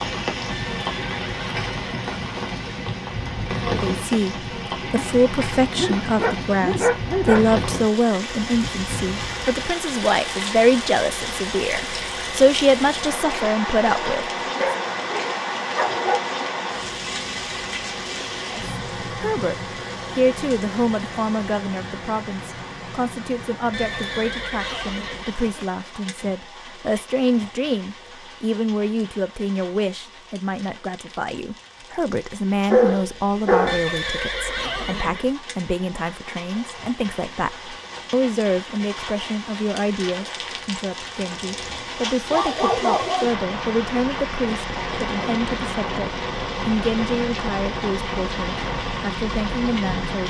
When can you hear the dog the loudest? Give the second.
33 s.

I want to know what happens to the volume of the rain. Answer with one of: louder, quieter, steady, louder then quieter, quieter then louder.
quieter then louder.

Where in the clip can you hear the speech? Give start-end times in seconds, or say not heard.
3.6-14.7, 18.4-50.2.